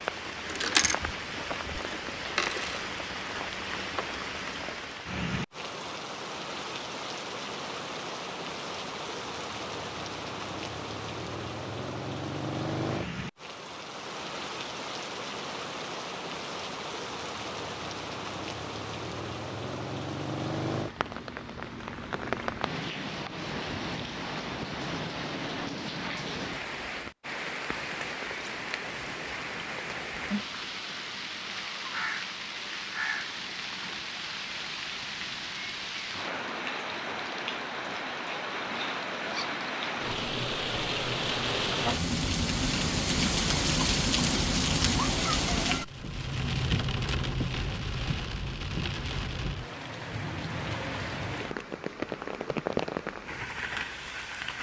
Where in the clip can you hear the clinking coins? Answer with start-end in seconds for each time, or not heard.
0.5-1.0, 1.8-2.9.